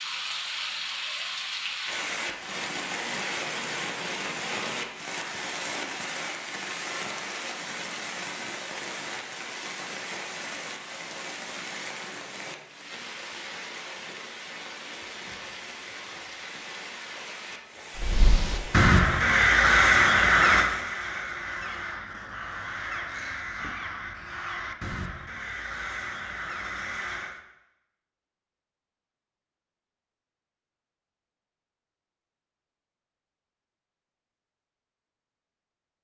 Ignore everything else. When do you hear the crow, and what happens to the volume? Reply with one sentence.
You can hear the crow from 17.9 to 27.4 s, getting quieter.